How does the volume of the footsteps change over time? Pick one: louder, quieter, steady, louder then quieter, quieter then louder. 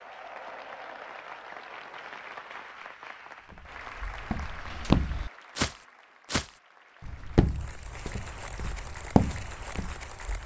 quieter then louder.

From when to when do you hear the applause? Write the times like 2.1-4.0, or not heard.
0.0-10.4.